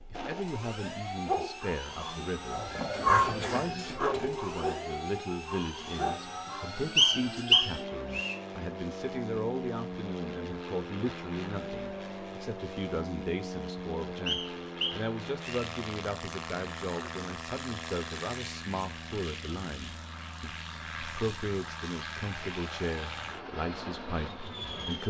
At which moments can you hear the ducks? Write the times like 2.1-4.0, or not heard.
not heard.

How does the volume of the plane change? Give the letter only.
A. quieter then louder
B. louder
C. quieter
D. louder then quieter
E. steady
E.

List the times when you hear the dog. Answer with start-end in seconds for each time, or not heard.
1.2-7.7.